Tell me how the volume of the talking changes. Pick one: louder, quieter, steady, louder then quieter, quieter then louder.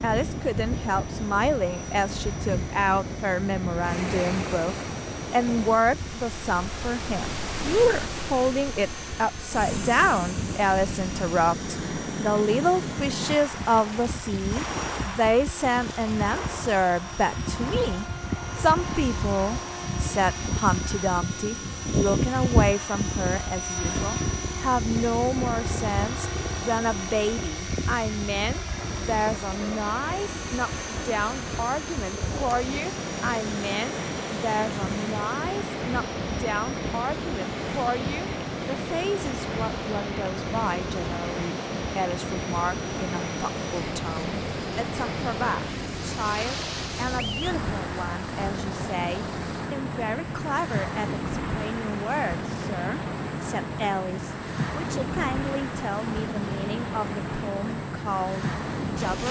quieter.